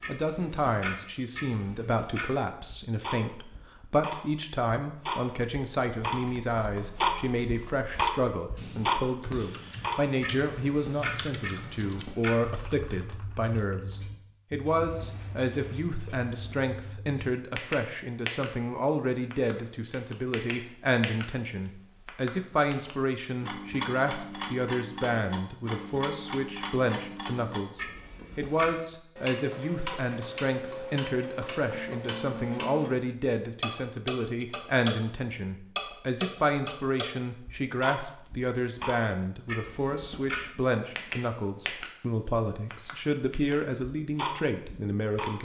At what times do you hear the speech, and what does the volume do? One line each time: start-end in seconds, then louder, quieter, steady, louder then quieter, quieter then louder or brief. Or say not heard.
0.1-45.3 steady.